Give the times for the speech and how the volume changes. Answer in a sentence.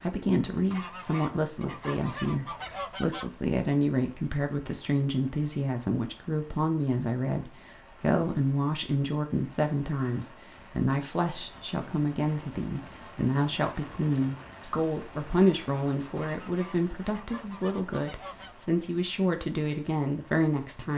You can hear the speech from 0.0 to 20.9 s, at a steady volume.